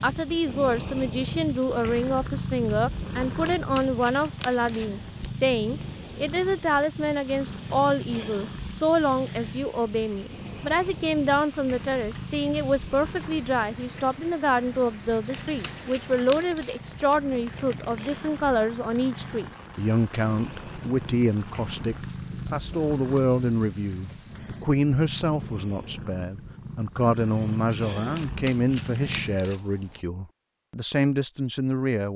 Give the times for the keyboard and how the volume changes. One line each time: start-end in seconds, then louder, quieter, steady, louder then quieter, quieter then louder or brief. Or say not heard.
not heard.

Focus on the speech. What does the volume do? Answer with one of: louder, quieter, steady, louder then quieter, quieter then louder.
steady.